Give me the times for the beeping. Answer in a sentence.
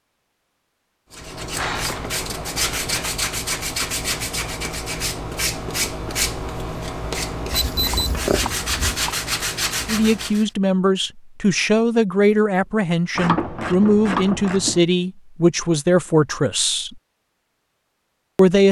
You can hear the beeping from 7.5 to 9.1 s.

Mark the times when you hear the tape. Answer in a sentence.
You can't hear the tape here.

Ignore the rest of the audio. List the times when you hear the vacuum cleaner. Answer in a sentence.
The vacuum cleaner can't be heard in this clip.